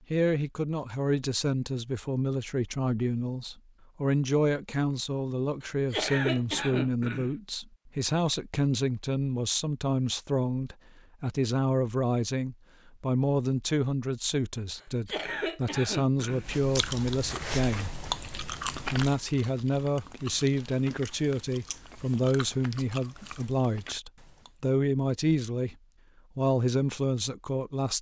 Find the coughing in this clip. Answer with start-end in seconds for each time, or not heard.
5.6-7.3, 14.8-16.5.